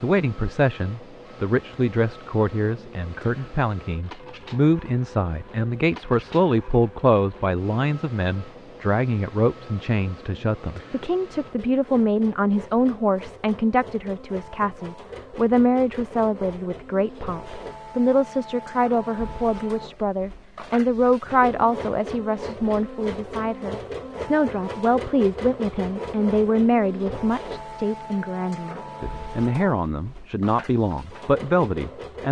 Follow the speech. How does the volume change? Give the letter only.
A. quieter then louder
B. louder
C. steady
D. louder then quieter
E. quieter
C.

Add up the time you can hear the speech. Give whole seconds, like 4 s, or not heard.
32 s.